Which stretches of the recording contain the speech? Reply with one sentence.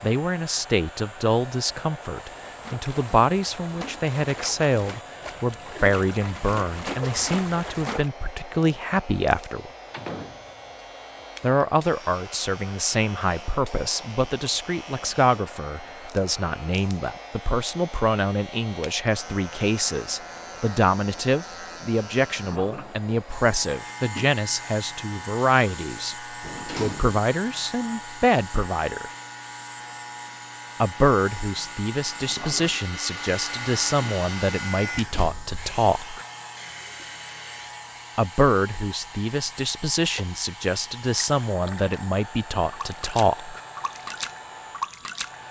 The speech can be heard from 0.0 to 9.7 s, from 11.4 to 26.1 s, from 26.8 to 29.1 s, from 30.8 to 36.2 s and from 38.1 to 43.6 s.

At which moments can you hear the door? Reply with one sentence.
You can hear the door from 9.9 to 10.8 s, from 26.4 to 27.2 s and from 35.0 to 35.8 s.